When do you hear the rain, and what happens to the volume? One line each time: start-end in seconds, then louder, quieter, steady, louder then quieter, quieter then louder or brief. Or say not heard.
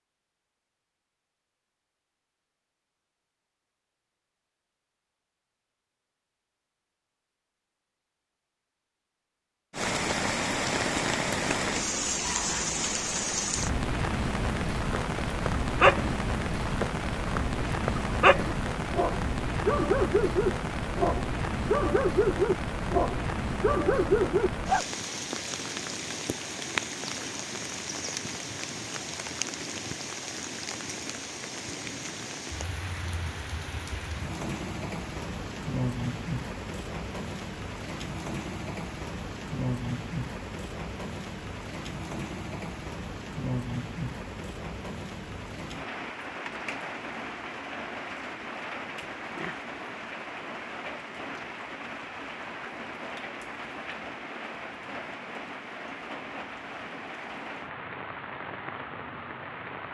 9.7-59.8 quieter.